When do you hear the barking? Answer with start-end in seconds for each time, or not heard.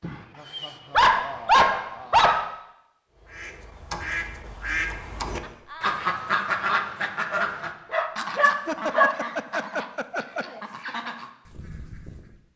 0.0-2.5, 7.3-9.2.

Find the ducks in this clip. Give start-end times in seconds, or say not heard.
3.1-12.4.